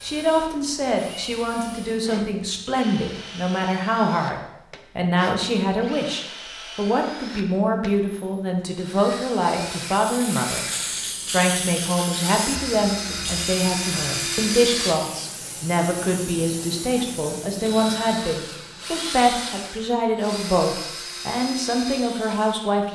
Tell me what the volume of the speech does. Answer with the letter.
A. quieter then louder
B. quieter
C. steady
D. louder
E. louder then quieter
C.